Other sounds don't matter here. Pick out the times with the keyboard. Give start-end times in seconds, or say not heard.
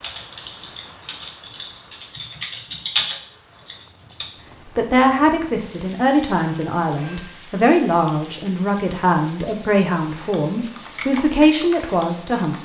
0.0-4.3, 10.1-12.5.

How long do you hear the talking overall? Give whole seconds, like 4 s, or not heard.
8 s.